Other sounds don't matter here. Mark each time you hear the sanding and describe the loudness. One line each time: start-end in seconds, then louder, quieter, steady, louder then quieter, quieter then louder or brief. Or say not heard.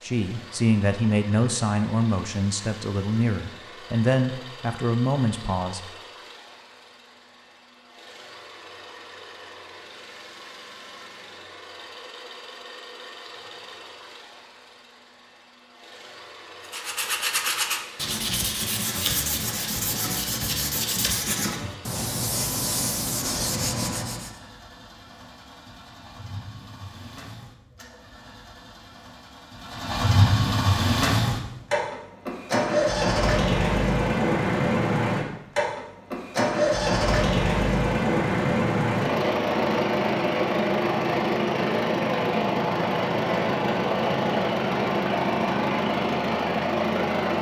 16.6-24.4 steady.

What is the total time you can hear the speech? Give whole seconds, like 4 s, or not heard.
6 s.